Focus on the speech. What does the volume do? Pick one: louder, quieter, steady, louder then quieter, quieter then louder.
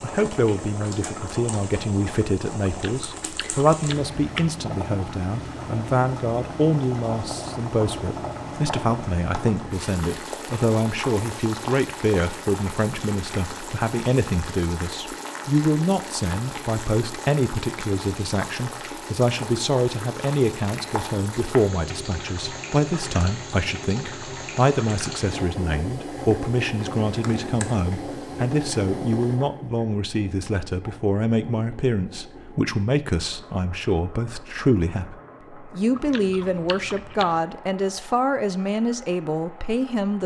steady.